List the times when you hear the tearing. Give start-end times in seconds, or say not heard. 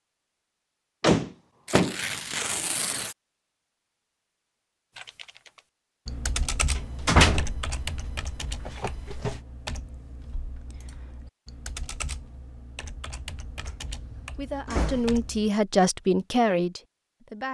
1.6-3.1.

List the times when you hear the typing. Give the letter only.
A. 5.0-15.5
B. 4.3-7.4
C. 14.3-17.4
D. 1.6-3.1
A.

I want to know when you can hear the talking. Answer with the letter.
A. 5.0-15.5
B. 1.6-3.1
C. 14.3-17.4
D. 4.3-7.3
C.